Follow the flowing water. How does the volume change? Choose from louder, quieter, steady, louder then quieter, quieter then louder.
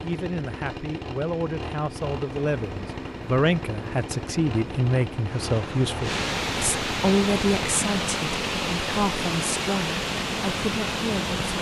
louder.